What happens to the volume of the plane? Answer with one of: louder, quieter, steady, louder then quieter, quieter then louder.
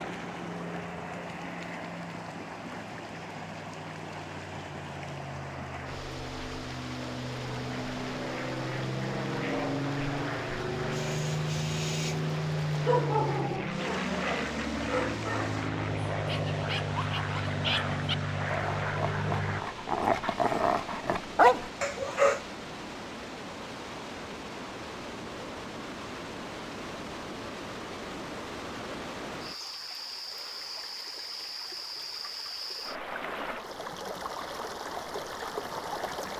louder.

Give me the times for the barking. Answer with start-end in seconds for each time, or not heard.
10.9-22.4.